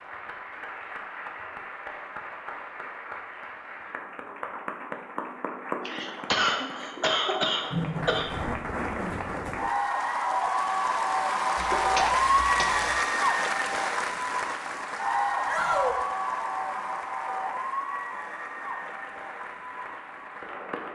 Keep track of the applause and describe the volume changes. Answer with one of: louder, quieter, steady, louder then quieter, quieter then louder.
louder then quieter.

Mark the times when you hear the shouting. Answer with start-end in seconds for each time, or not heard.
15.4-16.1.